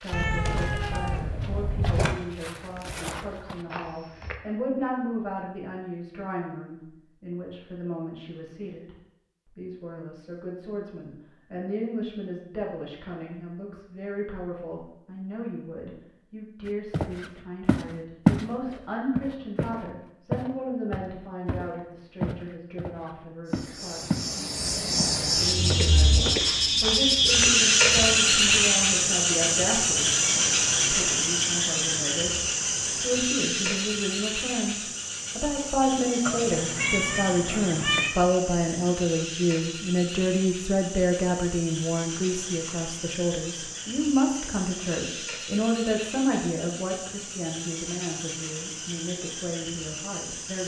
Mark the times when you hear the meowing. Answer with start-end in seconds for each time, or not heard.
0.1-2.1, 36.2-38.1.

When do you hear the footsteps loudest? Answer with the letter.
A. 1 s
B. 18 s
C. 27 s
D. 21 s
B.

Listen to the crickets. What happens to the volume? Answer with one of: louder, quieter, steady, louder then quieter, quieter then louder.
quieter.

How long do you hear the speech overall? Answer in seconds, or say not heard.
50 s.